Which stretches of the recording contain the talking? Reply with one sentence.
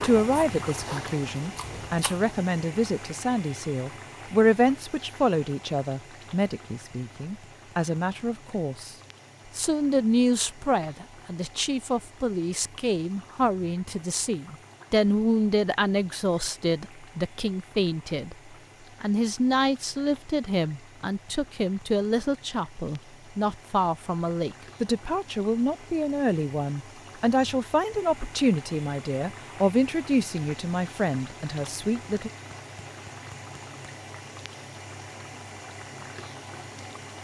The talking can be heard from 0.0 to 8.9 s, from 9.6 to 18.4 s and from 19.0 to 32.3 s.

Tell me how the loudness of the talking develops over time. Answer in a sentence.
The loudness of the talking stays about the same.